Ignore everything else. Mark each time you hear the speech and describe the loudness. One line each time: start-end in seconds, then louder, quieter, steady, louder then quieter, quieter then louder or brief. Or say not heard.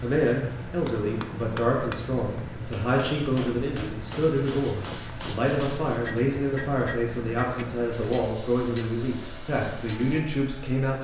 0.0-11.0 steady.